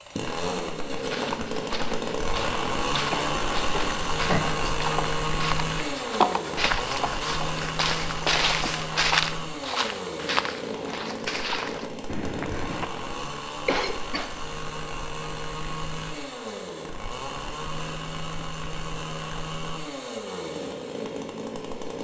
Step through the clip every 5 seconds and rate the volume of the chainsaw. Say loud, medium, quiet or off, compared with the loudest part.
loud, loud, medium, medium, medium.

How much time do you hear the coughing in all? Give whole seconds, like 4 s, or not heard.
2 s.